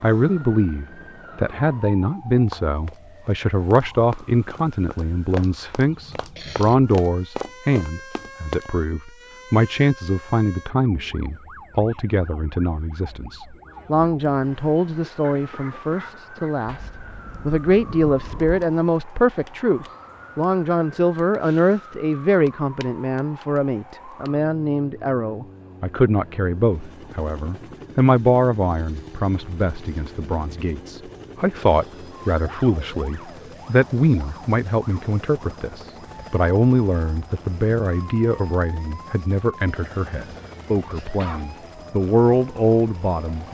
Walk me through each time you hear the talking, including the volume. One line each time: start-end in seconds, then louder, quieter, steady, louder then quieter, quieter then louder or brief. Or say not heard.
0.0-43.4 steady.